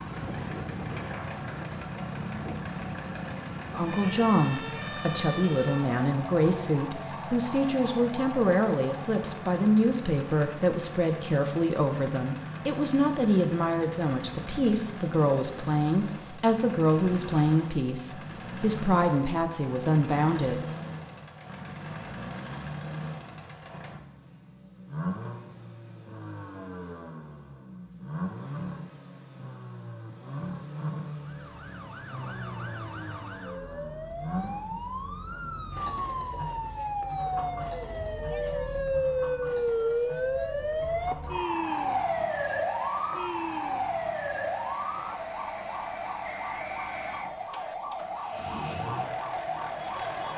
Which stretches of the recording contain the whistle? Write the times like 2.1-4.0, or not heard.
46.2-47.8.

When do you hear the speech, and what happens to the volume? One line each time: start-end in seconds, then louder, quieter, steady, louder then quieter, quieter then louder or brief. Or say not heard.
3.6-20.6 steady.